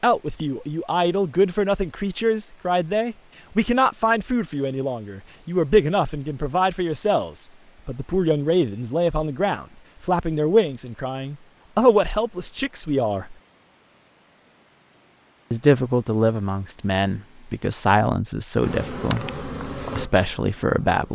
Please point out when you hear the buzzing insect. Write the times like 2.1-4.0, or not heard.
18.6-21.1.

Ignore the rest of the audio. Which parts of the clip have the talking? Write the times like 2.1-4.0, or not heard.
0.0-13.3, 15.5-21.1.